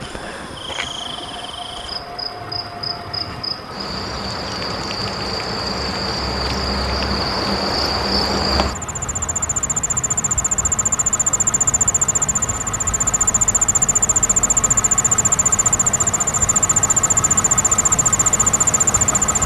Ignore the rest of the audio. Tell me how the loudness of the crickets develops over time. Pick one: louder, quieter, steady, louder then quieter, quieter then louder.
louder.